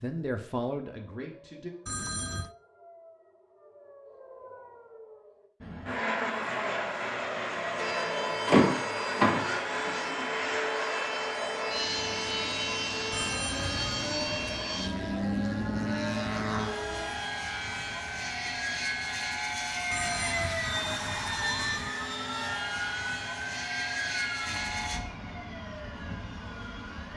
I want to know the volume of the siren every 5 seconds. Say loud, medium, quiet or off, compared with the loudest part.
quiet, loud, loud, loud, loud, loud.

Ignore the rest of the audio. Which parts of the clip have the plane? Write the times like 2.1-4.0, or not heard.
5.6-25.0.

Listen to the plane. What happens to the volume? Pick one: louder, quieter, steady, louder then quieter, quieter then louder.
steady.